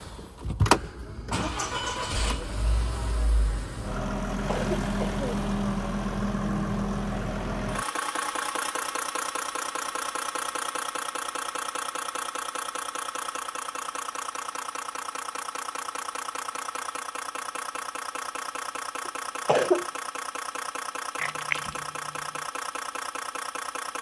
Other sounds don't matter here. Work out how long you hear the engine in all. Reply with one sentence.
You can hear the engine for 24 seconds altogether.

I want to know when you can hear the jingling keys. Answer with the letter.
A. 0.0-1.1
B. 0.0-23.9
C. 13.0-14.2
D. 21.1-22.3
D.